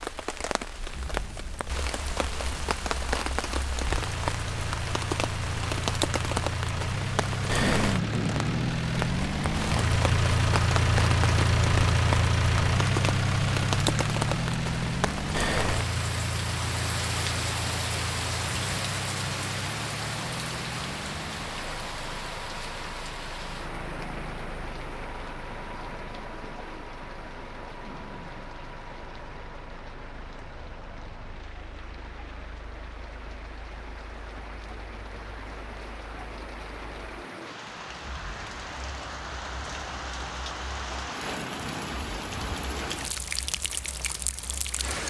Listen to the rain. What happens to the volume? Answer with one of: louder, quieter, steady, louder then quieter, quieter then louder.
quieter then louder.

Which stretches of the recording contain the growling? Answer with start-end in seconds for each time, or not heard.
7.6-8.8, 27.8-28.4.